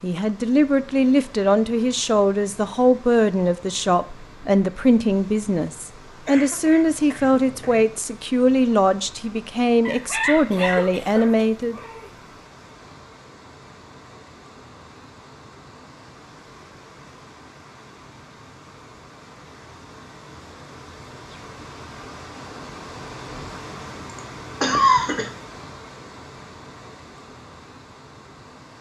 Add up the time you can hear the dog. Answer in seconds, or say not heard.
2 s.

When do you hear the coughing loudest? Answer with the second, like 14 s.
25 s.